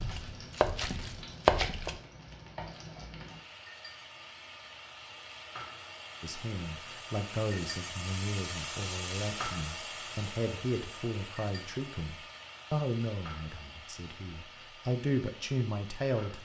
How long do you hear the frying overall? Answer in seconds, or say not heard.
16 s.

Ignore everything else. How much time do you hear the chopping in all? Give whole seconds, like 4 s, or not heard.
2 s.